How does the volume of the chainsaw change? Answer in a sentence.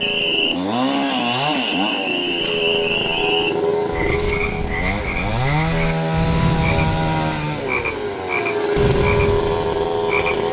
The volume of the chainsaw stays about the same.